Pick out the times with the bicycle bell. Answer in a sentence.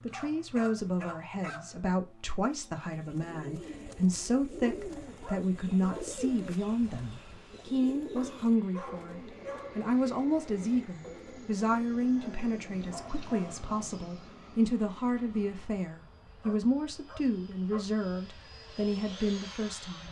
You can't hear the bicycle bell here.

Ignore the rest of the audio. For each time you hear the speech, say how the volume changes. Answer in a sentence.
You can hear the speech from 0.1 to 20.0 s, at a steady volume.